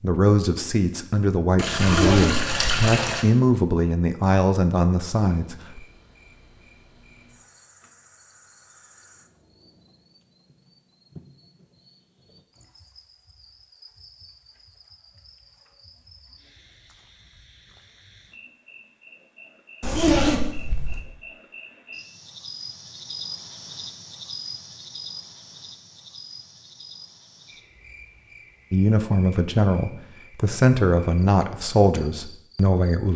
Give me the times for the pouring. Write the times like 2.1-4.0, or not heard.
1.6-3.2.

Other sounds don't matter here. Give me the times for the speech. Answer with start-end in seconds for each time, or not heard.
0.0-5.8, 28.7-33.1.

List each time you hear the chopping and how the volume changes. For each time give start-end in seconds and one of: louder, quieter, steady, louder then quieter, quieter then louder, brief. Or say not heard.
not heard.